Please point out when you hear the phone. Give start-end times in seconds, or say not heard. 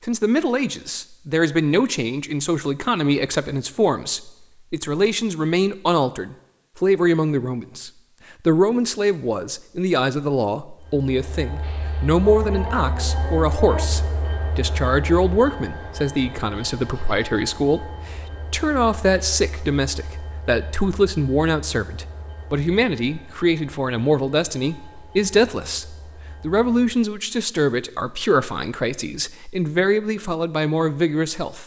not heard.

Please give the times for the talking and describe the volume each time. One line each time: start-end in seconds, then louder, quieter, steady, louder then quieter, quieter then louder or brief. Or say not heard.
0.1-31.6 steady.